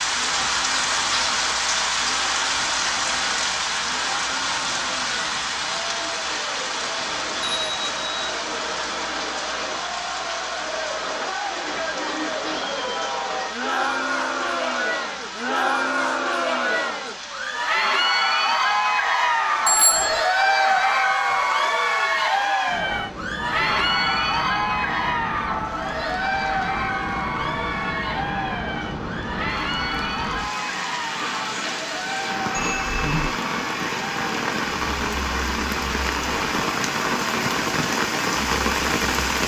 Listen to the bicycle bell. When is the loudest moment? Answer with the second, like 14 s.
20 s.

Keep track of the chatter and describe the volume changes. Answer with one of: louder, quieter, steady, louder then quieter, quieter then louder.
louder then quieter.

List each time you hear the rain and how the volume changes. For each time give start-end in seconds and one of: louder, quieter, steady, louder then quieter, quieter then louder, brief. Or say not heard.
0.0-39.4 quieter then louder.